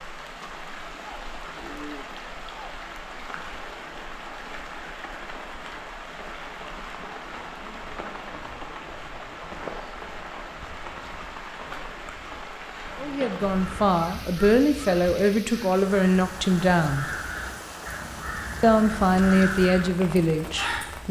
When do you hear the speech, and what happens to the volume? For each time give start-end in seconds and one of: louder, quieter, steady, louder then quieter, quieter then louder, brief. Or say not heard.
12.9-17.1 steady
18.6-21.0 brief.